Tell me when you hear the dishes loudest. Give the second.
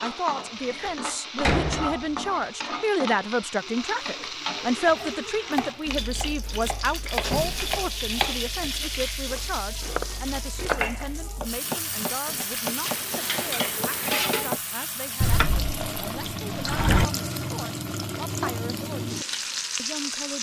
14 s.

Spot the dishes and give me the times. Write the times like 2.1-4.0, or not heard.
12.8-14.6.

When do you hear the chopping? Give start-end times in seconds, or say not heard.
4.8-14.6.